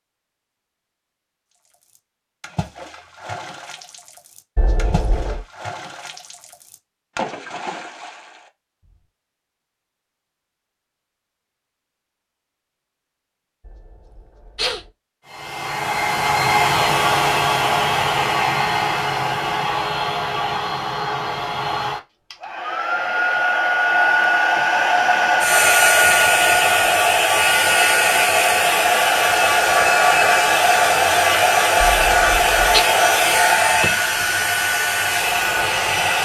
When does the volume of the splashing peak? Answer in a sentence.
The loudest moment of the splashing is at 7 seconds.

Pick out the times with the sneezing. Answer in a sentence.
You can hear the sneezing from 4.5 to 5.5 s, from 13.7 to 14.8 s and from 31.8 to 32.8 s.